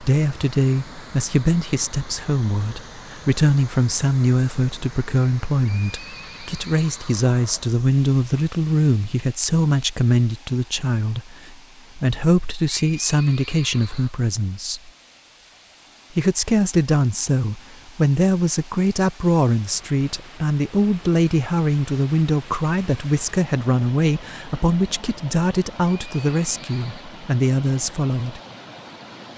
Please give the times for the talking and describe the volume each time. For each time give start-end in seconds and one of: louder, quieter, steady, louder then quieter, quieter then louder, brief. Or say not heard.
0.0-14.9 steady
16.1-28.4 steady.